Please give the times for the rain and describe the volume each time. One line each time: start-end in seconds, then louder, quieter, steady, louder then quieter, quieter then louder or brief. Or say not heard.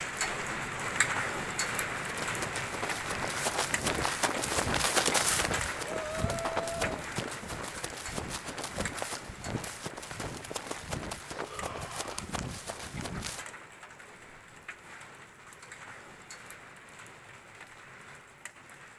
0.0-18.9 quieter.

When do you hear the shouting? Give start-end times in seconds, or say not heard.
5.8-6.9, 11.3-12.2.